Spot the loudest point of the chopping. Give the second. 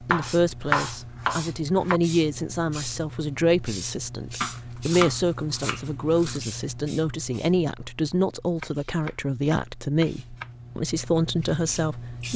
1 s.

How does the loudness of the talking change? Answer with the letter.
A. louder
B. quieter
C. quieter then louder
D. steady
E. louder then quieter
D.